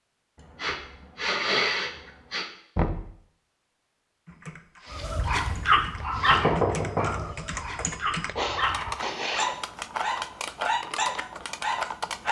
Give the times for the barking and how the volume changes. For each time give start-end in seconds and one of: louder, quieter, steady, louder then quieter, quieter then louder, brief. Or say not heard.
4.9-12.2 quieter then louder.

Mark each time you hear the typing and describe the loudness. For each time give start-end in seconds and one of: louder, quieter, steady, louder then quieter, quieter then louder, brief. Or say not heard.
4.2-12.2 louder.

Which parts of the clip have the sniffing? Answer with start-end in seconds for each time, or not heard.
0.3-2.5, 4.8-6.5, 8.3-9.4.